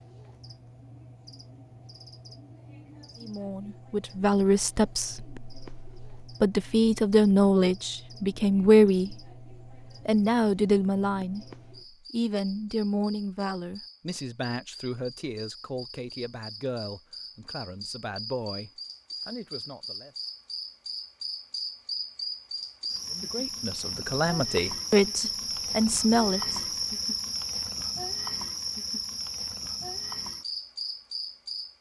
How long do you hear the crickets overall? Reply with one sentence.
The crickets can be heard for 32 seconds in total.